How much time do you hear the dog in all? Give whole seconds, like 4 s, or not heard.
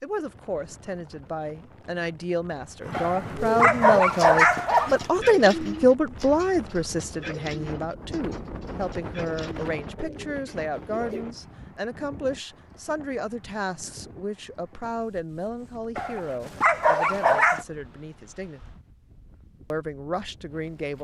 4 s.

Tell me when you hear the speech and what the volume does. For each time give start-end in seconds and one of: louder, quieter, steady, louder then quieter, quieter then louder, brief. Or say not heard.
0.0-18.6 louder then quieter
19.7-21.0 brief.